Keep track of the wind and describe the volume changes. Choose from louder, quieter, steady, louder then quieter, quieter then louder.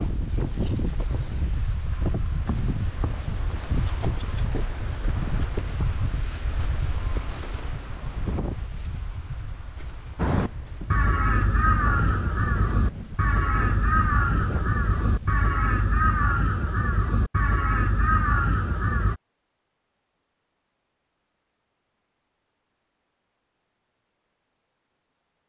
quieter.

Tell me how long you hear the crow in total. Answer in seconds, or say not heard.
9 s.